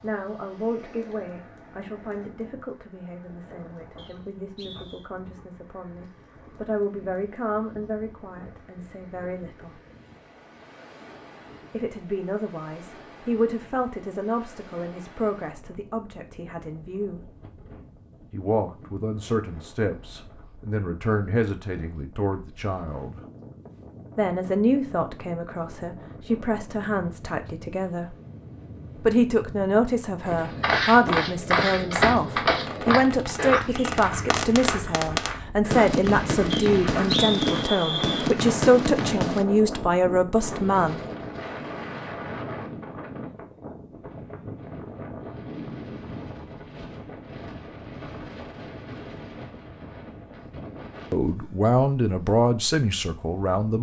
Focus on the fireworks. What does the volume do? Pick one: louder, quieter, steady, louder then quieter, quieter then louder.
louder.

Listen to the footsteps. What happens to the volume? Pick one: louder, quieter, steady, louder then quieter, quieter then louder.
quieter.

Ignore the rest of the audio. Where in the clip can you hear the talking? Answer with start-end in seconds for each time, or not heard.
0.0-9.8, 11.7-17.3, 18.3-23.2, 24.1-28.1, 29.0-41.0, 51.1-53.7.